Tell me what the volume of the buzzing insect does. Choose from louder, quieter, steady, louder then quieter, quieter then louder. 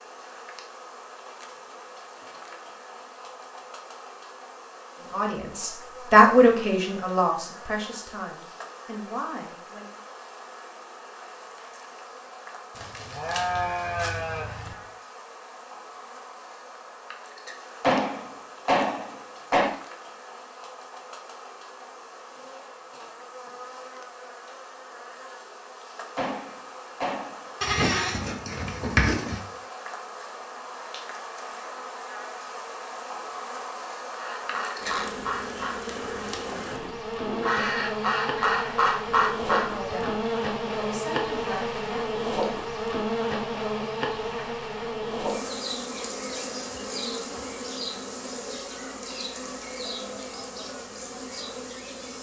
louder.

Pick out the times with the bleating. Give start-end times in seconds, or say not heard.
12.8-14.8, 27.6-29.4.